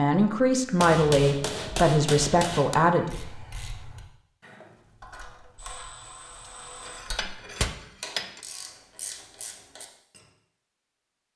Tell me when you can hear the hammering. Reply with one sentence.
You can hear the hammering from 0.8 to 2.8 s and from 6.5 to 8.4 s.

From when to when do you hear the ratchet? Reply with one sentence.
You can hear the ratchet from 3.0 to 10.3 s.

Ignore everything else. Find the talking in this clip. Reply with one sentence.
You can hear the talking from 0.0 to 3.0 s.